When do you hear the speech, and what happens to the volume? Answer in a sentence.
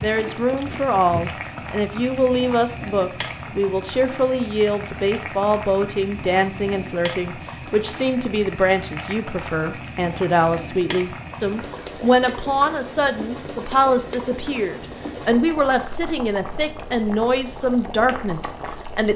The speech can be heard from 0.0 to 19.1 s, at a steady volume.